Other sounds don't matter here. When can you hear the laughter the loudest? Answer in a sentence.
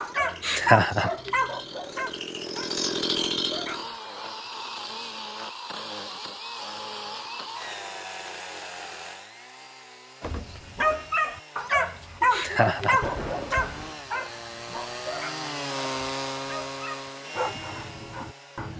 The volume of the laughter peaks at 1 second.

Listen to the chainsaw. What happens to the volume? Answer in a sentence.
The volume of the chainsaw goes down, then up.